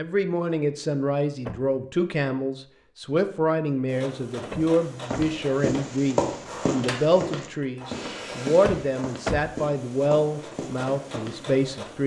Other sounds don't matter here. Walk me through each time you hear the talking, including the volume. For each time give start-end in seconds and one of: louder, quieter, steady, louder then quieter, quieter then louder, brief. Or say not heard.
0.0-12.0 steady.